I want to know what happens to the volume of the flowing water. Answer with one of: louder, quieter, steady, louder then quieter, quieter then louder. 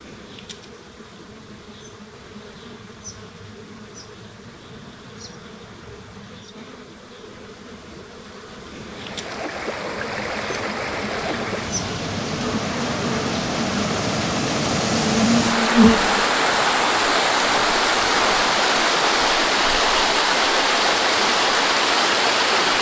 louder.